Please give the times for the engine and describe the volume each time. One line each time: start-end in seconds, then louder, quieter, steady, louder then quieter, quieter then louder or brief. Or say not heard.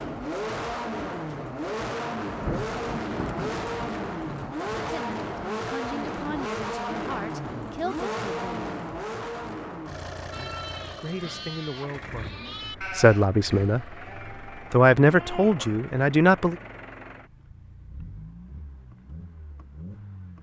0.0-20.3 quieter.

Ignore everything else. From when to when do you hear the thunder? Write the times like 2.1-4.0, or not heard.
2.4-4.8.